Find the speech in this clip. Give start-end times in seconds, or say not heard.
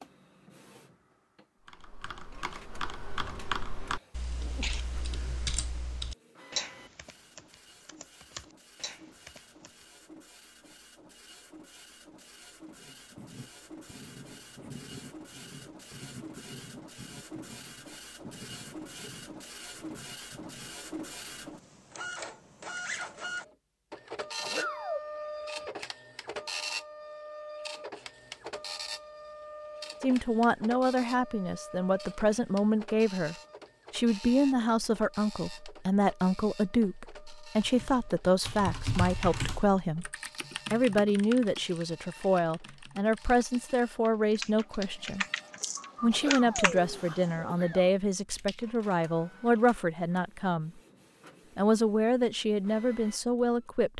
30.0-40.1, 40.7-45.2, 46.0-50.7, 51.5-53.9.